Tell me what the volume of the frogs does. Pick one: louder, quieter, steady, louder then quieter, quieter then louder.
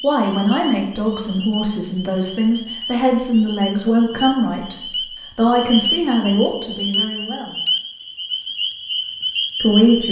louder.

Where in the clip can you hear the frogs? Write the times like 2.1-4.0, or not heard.
0.0-10.0.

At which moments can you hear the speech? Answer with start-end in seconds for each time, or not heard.
0.0-4.8, 5.3-7.6, 9.6-10.0.